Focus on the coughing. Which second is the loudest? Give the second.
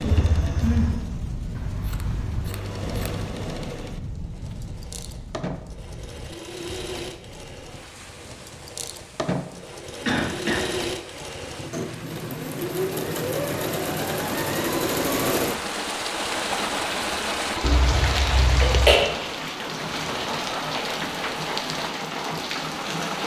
19 s.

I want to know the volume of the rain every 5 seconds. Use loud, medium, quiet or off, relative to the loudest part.
medium, quiet, medium, loud, loud.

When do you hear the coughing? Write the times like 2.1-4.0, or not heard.
0.1-0.9, 10.1-10.6, 17.6-19.0.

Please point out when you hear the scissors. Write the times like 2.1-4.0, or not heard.
1.5-3.3.